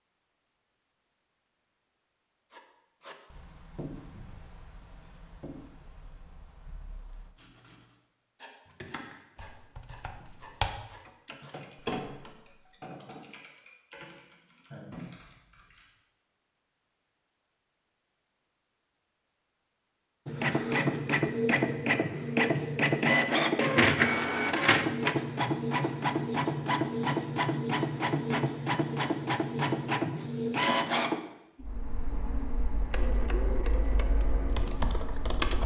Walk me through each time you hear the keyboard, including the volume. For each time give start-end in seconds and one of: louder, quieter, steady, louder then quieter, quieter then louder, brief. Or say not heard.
8.7-15.9 louder then quieter
34.2-35.6 brief.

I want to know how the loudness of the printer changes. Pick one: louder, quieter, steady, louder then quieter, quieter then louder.
quieter.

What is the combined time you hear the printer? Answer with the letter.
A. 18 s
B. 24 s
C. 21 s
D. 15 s
D.